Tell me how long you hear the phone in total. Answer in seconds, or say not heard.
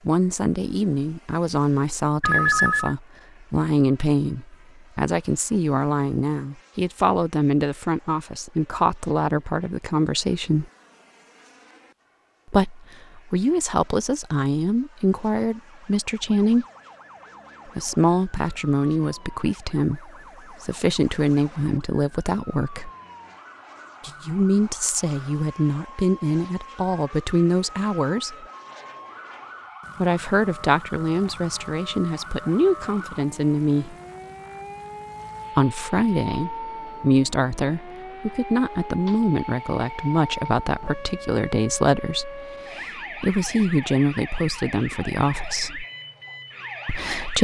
2 s.